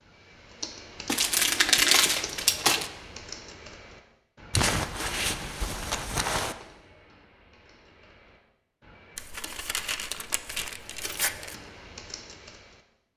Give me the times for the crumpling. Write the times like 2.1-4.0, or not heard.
1.1-2.9, 4.5-6.5, 9.2-11.6.